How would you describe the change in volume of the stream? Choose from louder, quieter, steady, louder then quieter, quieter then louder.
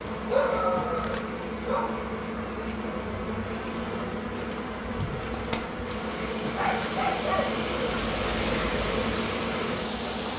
louder.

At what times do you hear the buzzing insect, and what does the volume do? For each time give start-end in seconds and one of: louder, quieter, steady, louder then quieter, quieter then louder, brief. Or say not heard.
0.0-10.3 steady.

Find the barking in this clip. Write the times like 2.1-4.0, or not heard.
0.1-2.0, 6.5-7.6.